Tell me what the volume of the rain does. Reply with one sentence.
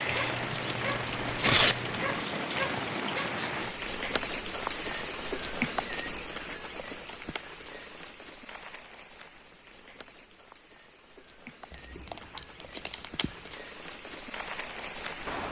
The loudness of the rain goes down, then up.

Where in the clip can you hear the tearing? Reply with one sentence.
The tearing can be heard from 0.1 to 2.2 s and from 11.7 to 13.6 s.